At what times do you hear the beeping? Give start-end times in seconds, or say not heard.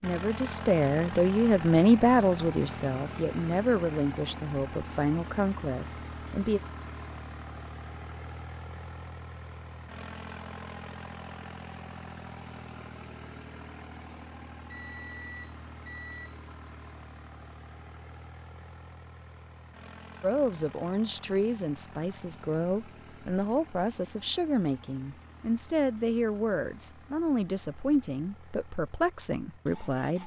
14.7-16.4.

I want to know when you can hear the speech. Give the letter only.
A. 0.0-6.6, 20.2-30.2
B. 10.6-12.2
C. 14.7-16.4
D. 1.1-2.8
A.